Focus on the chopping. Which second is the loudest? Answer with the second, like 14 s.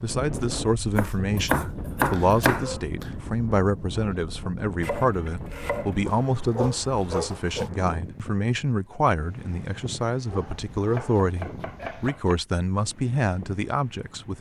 2 s.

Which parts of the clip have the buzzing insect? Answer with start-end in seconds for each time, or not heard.
not heard.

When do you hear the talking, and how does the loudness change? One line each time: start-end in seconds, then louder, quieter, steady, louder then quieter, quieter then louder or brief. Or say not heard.
0.0-14.3 steady.